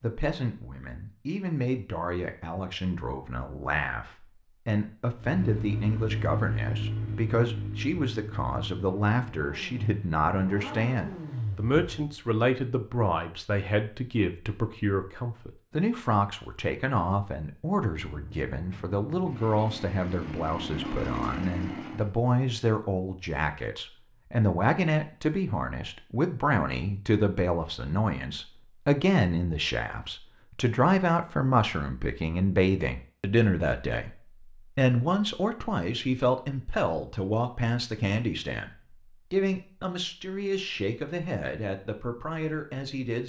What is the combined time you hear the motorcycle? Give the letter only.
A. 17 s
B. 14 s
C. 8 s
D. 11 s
D.